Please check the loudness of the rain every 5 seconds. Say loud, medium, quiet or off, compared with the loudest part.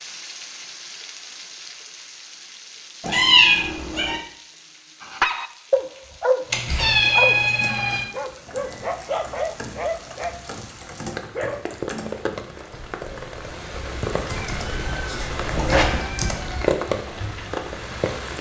quiet, quiet, medium, loud.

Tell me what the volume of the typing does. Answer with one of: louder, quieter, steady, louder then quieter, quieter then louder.
louder.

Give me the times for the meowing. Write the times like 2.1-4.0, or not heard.
3.0-4.2, 6.5-8.1, 14.2-16.7.